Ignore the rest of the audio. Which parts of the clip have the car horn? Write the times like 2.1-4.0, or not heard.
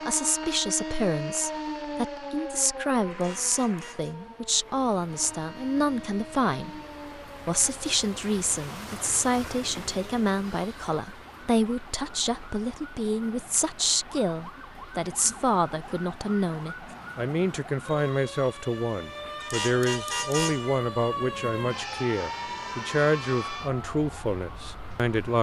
3.0-4.2, 19.4-20.9.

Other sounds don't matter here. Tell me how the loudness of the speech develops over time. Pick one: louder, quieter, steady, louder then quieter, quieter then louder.
steady.